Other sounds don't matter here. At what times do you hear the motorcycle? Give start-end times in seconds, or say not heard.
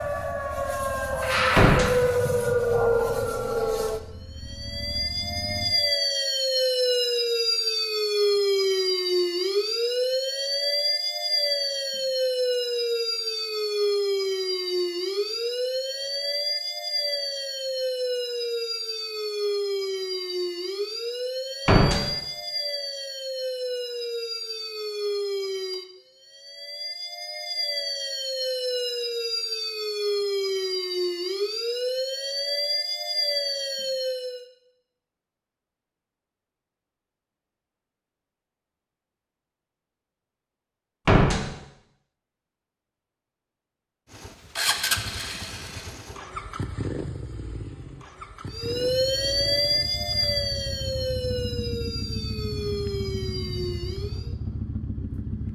0.0-5.8, 44.1-55.5.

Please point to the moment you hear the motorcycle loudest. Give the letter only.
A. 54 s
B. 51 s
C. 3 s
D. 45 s
D.